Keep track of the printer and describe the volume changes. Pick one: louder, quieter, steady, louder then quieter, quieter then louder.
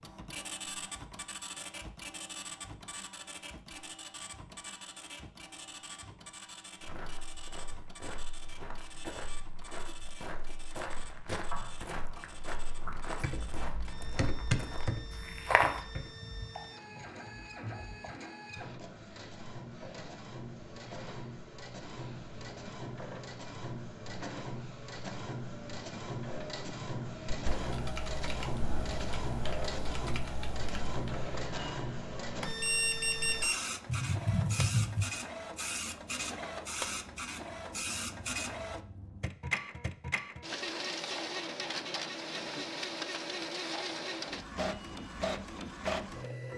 louder.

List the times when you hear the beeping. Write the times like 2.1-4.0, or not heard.
32.6-33.6.